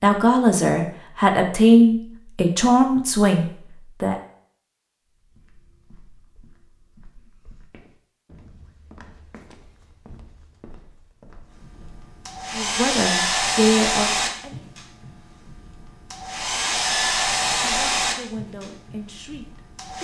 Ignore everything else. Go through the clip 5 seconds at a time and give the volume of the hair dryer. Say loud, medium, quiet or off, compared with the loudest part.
off, off, loud, loud.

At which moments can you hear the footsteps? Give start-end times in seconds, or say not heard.
5.2-12.1.